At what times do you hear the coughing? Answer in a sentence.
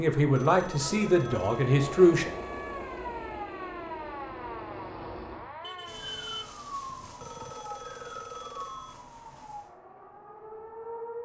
You can't hear the coughing here.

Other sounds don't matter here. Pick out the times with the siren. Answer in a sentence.
You can hear the siren from 0.0 to 11.1 s.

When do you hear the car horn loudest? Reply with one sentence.
The loudest moment of the car horn is at 6 seconds.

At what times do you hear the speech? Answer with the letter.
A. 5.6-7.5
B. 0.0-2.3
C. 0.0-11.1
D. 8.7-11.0
B.